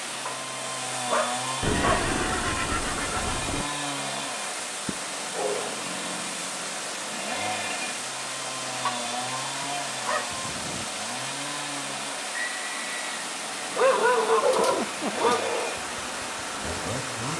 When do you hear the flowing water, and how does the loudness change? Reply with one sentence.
The flowing water can be heard from 0.0 to 17.3 s, at a steady volume.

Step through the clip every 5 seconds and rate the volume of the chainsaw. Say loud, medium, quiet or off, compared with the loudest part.
loud, loud, medium, loud.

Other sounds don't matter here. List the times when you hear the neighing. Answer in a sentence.
You can hear the neighing from 1.6 to 3.6 s and from 12.3 to 13.1 s.